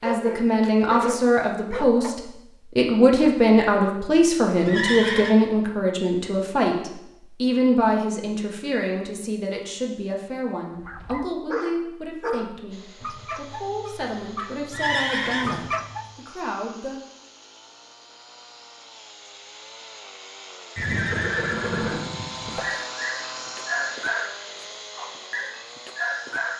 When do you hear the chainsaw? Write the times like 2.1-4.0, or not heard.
12.7-26.5.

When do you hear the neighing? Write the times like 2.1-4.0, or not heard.
4.7-5.3, 14.7-15.7, 20.8-22.7.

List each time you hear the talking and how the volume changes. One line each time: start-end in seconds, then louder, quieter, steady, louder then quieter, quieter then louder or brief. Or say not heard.
0.0-17.0 quieter.